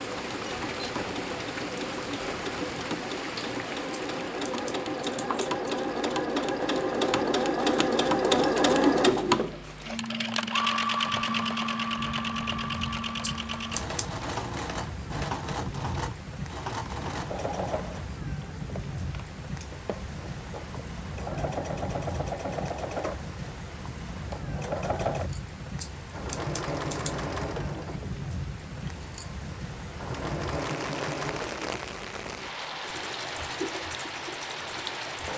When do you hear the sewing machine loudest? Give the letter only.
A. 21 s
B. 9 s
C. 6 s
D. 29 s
B.